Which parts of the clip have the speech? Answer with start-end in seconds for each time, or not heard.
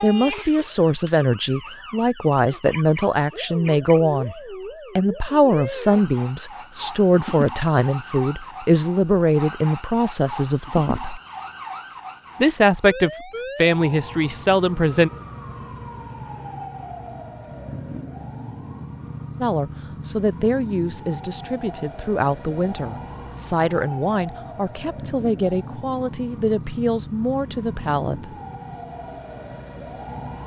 0.0-4.3, 5.0-11.2, 12.4-15.1, 19.4-28.4.